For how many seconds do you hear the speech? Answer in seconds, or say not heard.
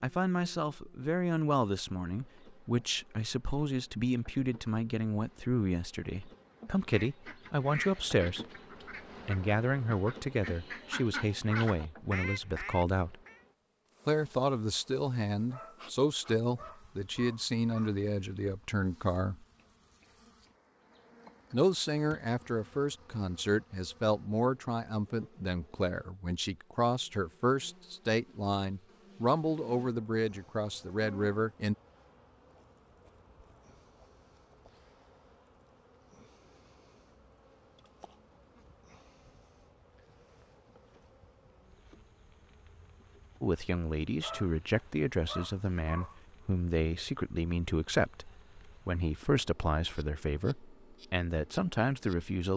37 s.